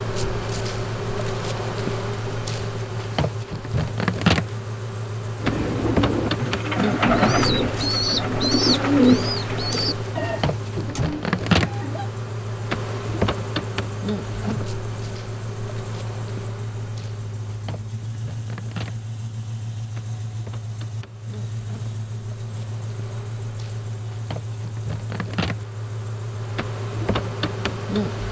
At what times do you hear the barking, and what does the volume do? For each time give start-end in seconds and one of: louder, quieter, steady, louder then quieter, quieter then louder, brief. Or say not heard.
not heard.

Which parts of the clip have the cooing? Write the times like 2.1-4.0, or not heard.
5.3-12.1.